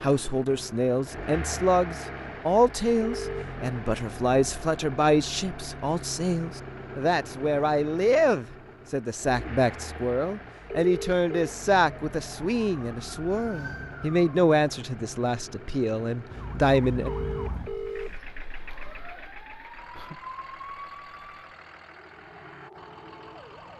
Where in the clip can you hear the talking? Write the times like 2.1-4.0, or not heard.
0.0-17.1.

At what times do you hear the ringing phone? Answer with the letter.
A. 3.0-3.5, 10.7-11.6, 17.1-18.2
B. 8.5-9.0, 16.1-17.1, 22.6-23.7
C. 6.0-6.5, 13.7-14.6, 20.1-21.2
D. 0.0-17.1
A.